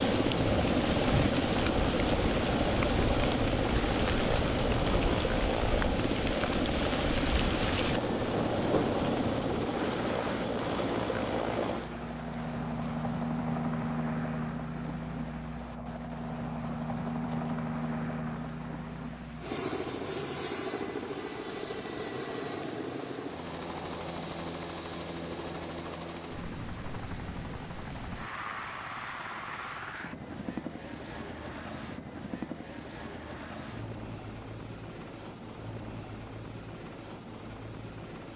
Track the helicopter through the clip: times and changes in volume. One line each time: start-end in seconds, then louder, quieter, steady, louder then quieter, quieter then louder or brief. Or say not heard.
0.0-38.3 quieter.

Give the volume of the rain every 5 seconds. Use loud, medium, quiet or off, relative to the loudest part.
loud, loud, medium, quiet, quiet, quiet, off, off.